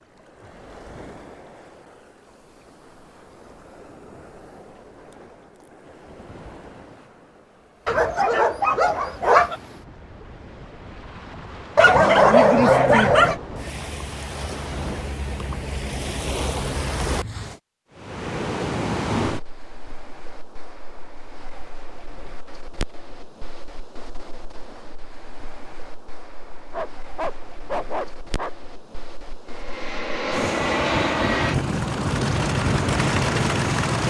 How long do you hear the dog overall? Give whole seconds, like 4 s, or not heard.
5 s.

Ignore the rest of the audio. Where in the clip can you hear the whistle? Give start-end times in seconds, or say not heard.
not heard.